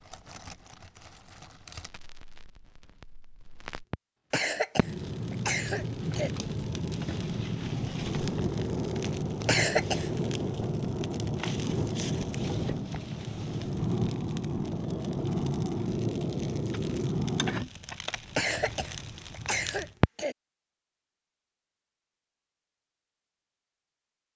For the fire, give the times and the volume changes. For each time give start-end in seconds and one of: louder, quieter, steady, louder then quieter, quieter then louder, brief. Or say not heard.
0.0-20.1 louder.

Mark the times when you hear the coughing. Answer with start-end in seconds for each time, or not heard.
4.3-6.3, 9.4-10.1, 18.4-20.4.